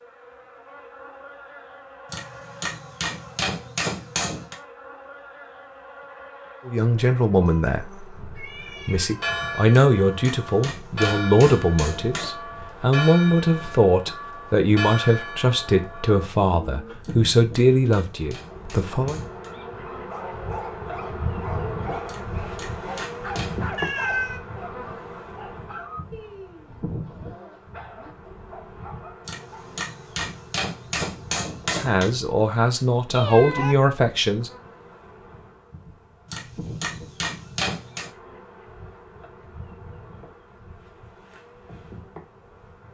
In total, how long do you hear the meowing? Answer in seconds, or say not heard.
3 s.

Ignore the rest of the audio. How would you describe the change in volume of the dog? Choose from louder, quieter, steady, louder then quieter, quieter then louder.
quieter.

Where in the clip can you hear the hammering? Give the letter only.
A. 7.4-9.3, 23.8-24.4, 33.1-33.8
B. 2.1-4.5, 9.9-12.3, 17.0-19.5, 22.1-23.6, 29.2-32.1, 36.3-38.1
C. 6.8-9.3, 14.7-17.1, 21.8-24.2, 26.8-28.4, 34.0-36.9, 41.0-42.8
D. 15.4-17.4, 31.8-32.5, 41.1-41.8
B.